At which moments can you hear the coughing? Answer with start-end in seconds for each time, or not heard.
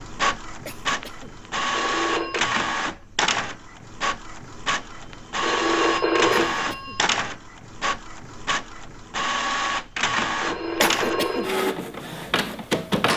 0.7-1.4, 6.5-7.0, 10.8-11.5.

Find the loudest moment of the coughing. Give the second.
11 s.